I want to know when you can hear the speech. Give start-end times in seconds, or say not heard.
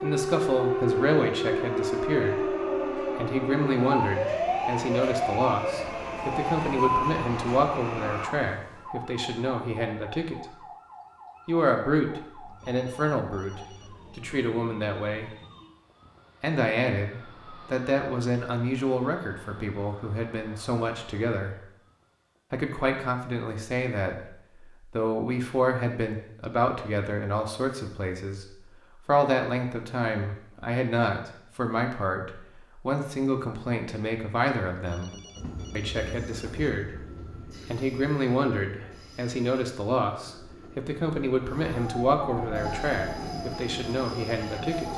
0.0-10.6, 11.4-15.3, 16.4-21.6, 22.5-35.1, 35.8-37.0, 37.7-44.9.